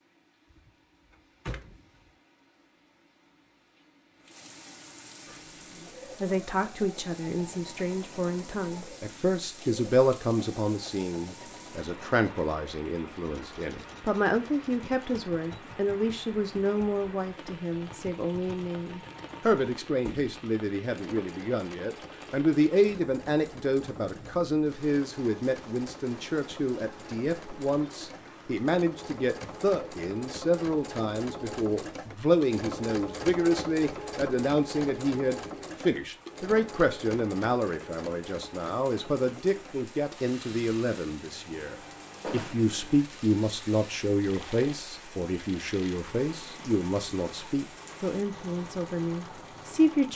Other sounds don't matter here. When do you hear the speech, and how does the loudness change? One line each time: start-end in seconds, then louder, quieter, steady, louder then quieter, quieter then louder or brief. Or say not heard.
6.2-50.1 steady.